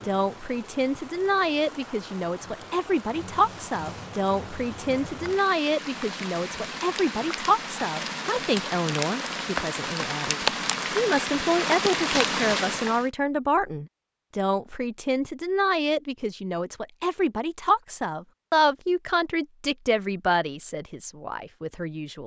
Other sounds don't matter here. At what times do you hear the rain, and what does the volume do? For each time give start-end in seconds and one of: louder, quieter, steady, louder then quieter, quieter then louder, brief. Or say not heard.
0.0-13.1 louder.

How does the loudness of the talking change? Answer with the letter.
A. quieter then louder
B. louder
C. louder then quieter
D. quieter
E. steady
E.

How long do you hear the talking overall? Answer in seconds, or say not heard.
22 s.